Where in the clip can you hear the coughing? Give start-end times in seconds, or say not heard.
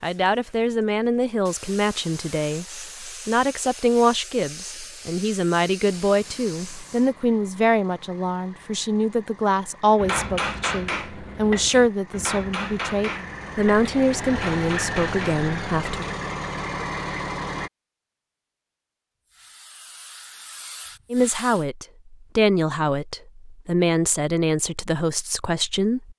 not heard.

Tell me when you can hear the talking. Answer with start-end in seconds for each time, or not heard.
0.0-16.1, 21.1-26.1.